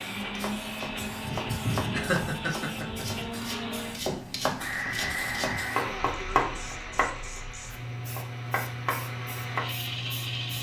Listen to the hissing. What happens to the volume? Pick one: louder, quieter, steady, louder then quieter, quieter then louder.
quieter then louder.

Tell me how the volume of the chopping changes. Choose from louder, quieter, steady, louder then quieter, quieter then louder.
louder then quieter.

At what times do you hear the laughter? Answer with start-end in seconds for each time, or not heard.
1.9-3.0.